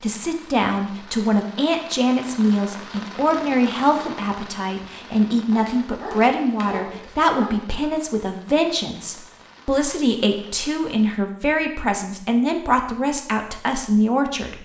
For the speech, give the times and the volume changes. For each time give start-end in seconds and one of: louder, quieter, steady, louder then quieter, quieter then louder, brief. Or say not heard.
0.0-14.6 steady.